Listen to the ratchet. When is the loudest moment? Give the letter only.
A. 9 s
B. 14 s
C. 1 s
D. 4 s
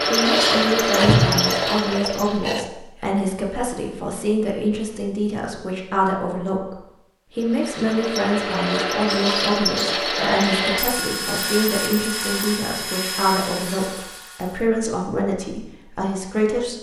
C.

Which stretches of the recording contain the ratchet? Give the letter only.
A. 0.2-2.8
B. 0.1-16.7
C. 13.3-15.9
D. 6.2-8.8
A.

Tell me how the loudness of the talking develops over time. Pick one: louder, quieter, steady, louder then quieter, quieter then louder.
steady.